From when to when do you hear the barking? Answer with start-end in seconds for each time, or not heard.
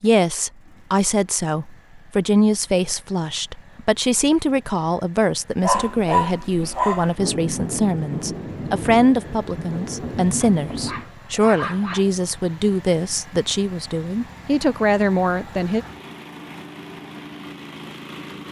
5.6-7.2, 10.4-12.1.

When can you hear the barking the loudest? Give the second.
6 s.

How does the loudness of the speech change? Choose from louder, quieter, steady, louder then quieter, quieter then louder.
steady.